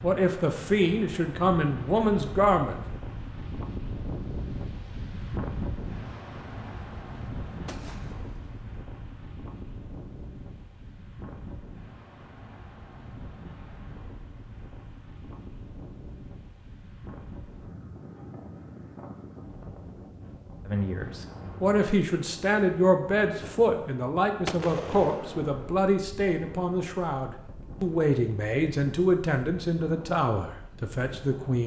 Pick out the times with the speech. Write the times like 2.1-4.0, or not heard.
0.0-2.8, 20.6-31.6.